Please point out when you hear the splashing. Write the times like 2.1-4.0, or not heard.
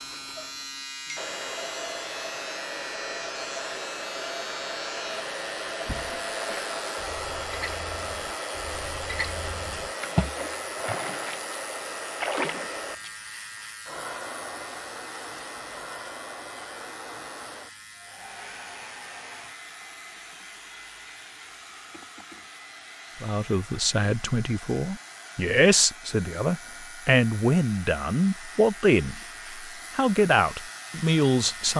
5.8-12.7.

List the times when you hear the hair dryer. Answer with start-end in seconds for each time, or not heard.
0.0-31.7.